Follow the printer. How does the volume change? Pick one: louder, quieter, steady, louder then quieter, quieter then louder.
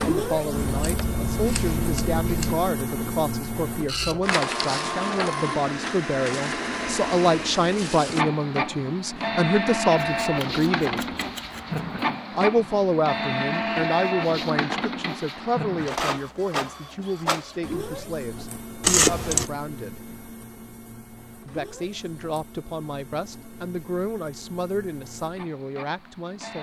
quieter.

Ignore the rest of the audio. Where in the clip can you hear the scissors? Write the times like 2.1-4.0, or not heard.
0.5-2.5, 10.2-12.0, 18.8-19.5.